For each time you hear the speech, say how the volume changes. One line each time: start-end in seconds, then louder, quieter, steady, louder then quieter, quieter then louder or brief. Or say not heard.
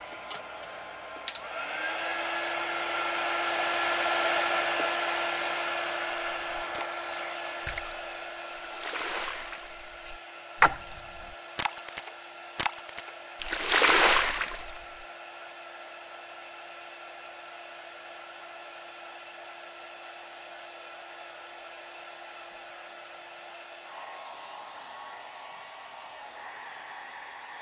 not heard.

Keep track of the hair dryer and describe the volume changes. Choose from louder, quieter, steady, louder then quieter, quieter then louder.
quieter.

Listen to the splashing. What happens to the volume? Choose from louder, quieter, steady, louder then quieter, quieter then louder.
louder.